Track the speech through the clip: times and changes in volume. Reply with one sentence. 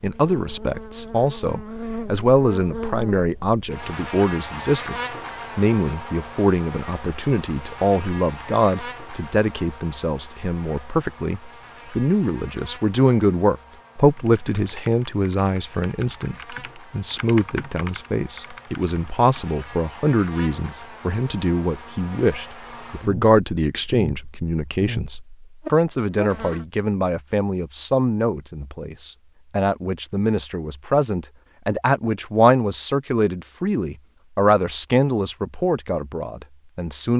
The speech can be heard from 0.0 to 37.1 s, at a steady volume.